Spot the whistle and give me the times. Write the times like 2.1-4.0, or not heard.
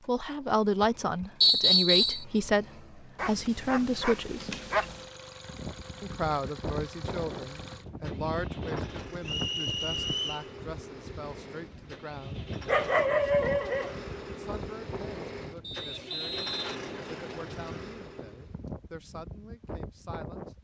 1.4-2.2, 9.2-10.4, 15.6-17.6.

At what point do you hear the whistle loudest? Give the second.
2 s.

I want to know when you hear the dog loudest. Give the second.
13 s.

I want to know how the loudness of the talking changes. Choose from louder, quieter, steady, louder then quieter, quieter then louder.
quieter.